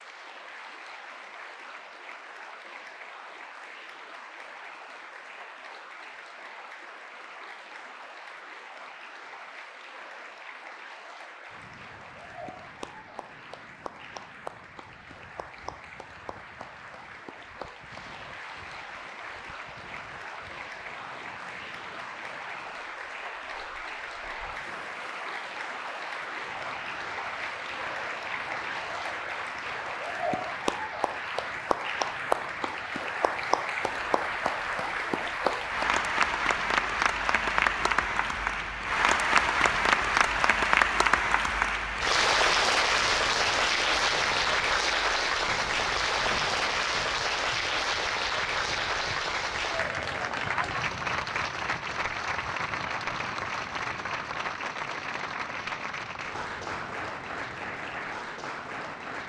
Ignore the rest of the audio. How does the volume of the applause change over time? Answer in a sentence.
The volume of the applause goes up, then down.